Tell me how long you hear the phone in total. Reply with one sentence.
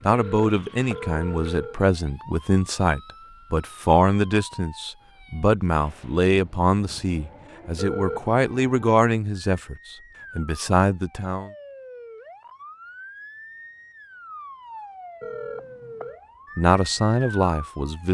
The phone can be heard for 3 seconds in total.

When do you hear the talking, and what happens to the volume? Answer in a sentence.
The talking can be heard from 0.1 to 11.5 s, at a steady volume; and briefly from 16.6 to 18.0 s.